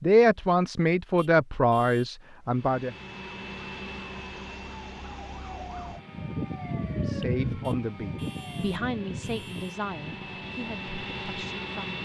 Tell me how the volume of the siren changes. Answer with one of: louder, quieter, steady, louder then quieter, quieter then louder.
louder then quieter.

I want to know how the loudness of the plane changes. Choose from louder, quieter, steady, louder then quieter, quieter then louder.
quieter then louder.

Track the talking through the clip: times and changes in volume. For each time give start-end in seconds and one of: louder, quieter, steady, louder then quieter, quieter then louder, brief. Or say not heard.
0.0-3.0 brief
6.9-12.0 quieter.